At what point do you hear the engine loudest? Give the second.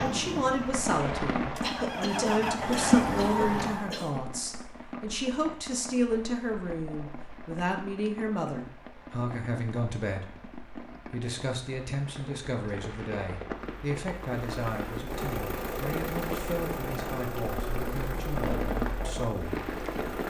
3 s.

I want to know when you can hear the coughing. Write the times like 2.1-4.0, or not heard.
1.6-4.2.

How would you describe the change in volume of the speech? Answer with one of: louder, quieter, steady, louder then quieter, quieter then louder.
quieter.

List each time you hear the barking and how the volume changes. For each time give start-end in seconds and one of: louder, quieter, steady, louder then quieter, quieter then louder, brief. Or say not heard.
not heard.